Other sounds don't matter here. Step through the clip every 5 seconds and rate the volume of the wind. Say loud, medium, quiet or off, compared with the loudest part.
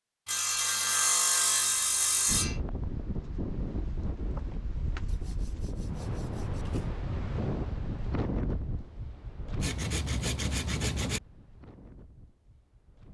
loud, loud, quiet.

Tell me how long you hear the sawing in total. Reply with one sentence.
You can hear the sawing for 6 seconds altogether.